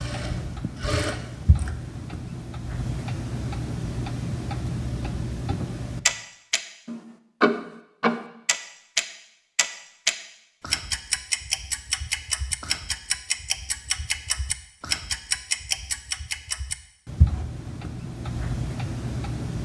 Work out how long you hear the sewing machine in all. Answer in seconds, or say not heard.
2 s.